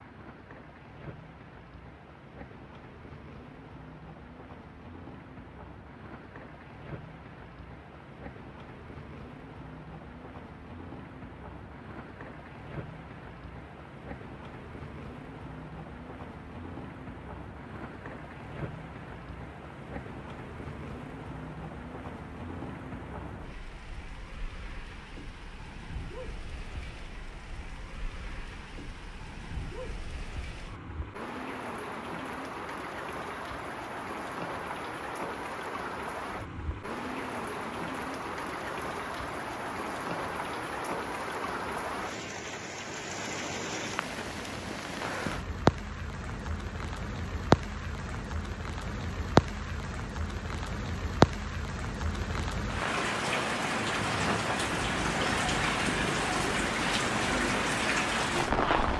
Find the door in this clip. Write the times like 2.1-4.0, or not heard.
not heard.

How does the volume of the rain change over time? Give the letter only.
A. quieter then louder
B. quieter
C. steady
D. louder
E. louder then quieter
D.